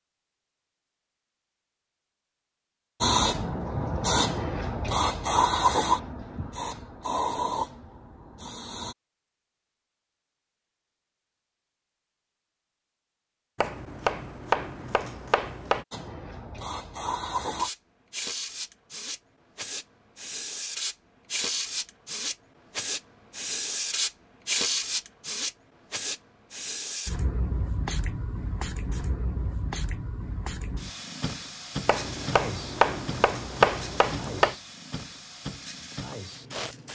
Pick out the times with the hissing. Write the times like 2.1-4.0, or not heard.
3.0-8.9, 15.9-36.9.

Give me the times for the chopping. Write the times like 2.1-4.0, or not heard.
13.6-15.8, 31.9-34.5.